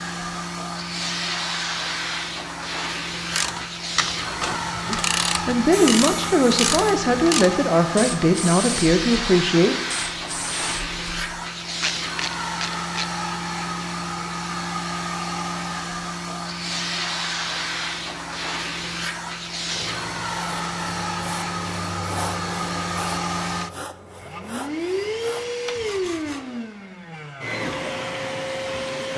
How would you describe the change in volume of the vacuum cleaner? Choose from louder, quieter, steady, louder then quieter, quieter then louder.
steady.